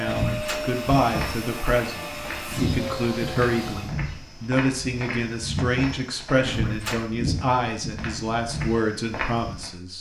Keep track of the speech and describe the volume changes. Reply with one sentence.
The loudness of the speech stays about the same.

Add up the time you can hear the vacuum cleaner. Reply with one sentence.
You can hear the vacuum cleaner for 4 seconds altogether.